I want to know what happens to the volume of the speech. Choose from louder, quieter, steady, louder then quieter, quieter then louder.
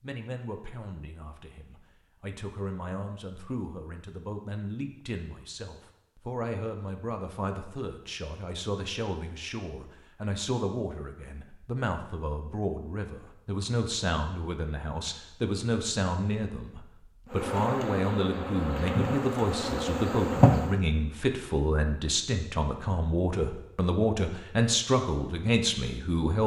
louder.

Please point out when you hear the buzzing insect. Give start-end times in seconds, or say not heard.
17.3-20.8.